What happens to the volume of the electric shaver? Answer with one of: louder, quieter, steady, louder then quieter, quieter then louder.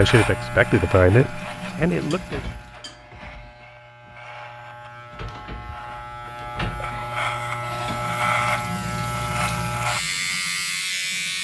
quieter then louder.